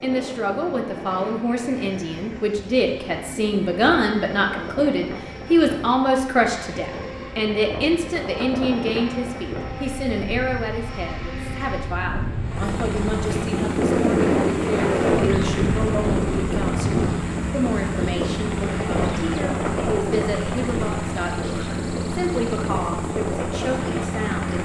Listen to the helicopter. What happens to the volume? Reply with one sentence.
The volume of the helicopter goes up.